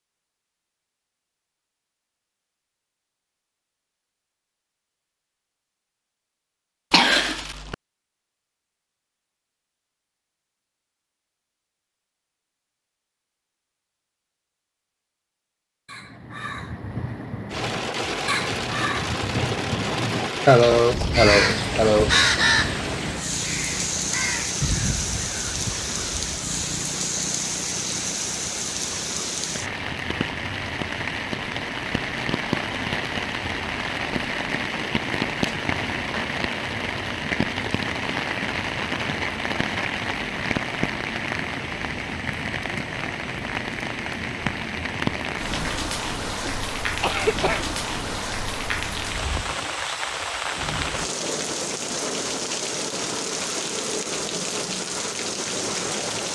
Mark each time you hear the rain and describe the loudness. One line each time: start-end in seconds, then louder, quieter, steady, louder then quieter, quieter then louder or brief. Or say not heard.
17.5-56.3 steady.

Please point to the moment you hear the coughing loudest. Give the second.
21 s.